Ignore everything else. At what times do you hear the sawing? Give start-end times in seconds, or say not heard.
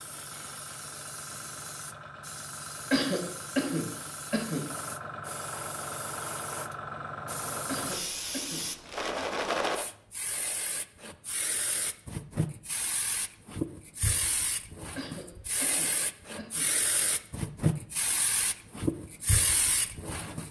not heard.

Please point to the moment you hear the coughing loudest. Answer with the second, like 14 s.
3 s.